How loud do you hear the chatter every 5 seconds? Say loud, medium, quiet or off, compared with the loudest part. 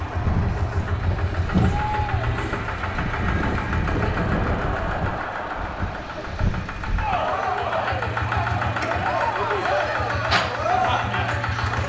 medium, loud, loud.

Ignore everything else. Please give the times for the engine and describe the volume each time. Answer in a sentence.
The engine can be heard from 0.0 to 11.8 s, getting quieter then louder.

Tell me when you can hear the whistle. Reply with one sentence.
You can't hear the whistle here.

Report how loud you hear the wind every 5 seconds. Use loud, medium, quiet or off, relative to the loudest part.
loud, medium, off.